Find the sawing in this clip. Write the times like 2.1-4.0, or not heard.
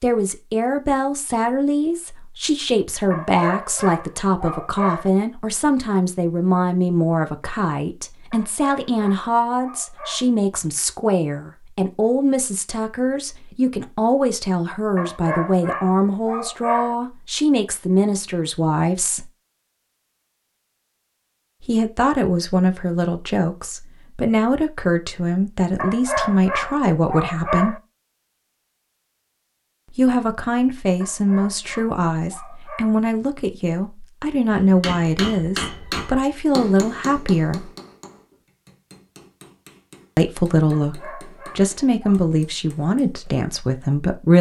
not heard.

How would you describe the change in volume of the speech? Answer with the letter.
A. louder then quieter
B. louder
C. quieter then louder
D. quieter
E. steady
E.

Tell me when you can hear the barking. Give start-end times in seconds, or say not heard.
3.1-5.1, 8.3-10.3, 14.9-16.9, 25.8-27.8, 31.0-33.0, 40.7-42.2.